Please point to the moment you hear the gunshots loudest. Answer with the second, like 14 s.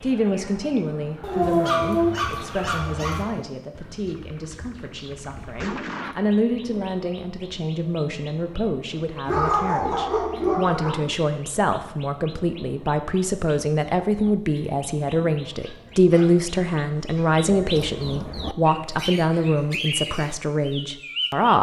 6 s.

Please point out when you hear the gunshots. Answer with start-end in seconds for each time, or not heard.
4.2-6.2.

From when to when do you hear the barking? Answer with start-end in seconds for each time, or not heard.
1.2-3.2, 9.2-10.9, 15.6-17.4.